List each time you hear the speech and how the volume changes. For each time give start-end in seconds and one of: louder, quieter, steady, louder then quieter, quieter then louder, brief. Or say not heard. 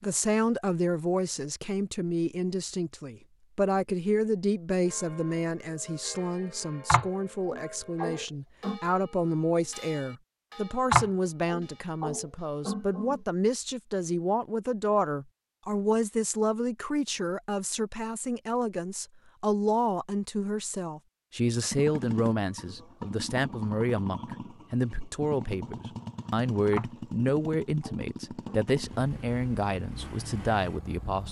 0.0-31.2 steady.